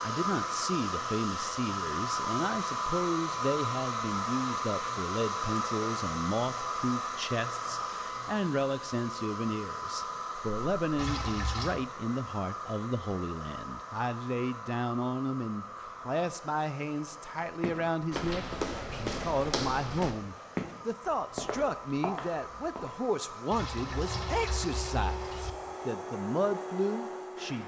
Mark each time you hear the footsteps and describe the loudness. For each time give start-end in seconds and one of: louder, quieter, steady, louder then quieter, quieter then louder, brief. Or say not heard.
17.6-22.9 quieter.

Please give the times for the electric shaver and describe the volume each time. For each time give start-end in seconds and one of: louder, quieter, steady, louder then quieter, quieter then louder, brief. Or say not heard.
not heard.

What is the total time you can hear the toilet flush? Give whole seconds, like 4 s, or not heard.
3 s.